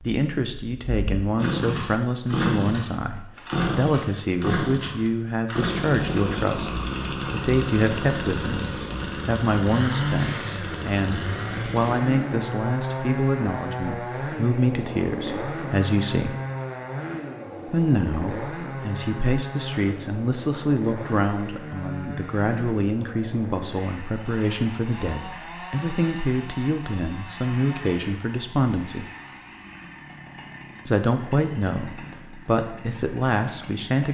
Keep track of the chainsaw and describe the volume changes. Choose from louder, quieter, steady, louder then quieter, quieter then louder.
quieter.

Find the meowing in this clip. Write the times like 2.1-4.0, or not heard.
not heard.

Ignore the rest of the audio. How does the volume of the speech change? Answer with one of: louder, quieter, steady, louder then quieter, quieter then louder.
steady.